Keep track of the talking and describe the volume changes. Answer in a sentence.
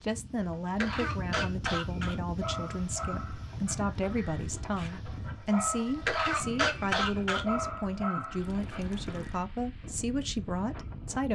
The volume of the talking stays about the same.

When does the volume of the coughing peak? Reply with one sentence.
The volume of the coughing peaks at 7 seconds.